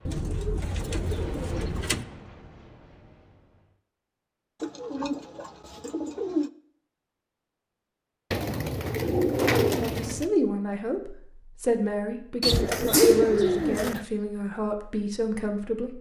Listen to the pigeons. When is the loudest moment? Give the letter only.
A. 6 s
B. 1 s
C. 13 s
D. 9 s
C.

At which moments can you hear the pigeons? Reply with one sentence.
You can hear the pigeons from 0.1 to 2.0 s, from 4.6 to 6.5 s, from 8.3 to 10.2 s and from 12.4 to 14.1 s.